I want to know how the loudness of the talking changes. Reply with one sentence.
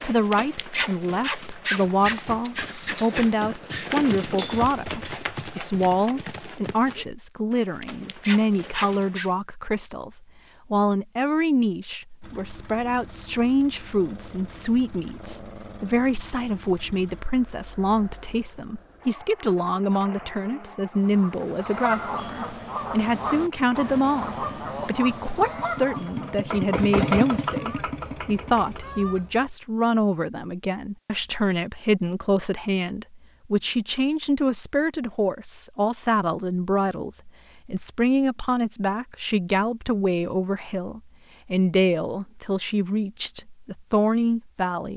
The volume of the talking stays about the same.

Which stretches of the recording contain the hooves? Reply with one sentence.
You can hear the hooves from 0.0 to 9.3 s.